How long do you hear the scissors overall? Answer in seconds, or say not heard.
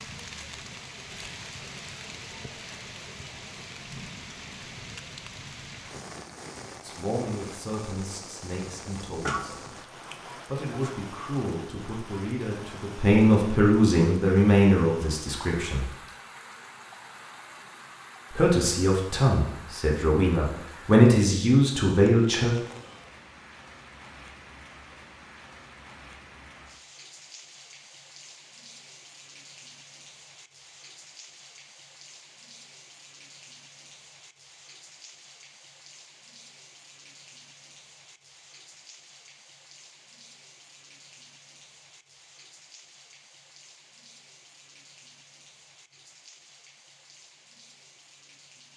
2 s.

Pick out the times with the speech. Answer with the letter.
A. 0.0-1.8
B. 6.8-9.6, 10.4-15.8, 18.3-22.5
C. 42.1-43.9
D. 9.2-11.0
B.